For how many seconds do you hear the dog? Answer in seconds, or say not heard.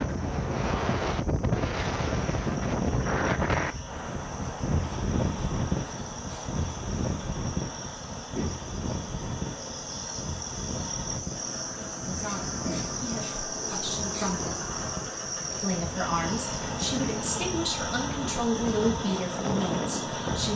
not heard.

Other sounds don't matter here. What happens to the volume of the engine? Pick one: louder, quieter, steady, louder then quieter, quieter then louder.
louder.